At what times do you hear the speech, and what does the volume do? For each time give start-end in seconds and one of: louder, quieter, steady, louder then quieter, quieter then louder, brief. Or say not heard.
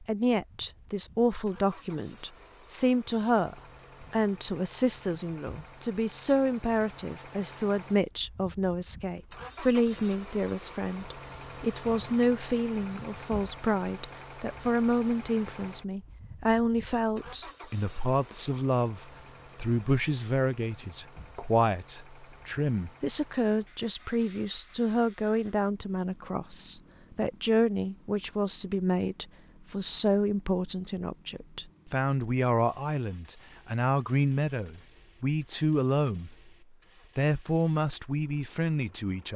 0.0-36.4 steady
37.1-39.3 brief.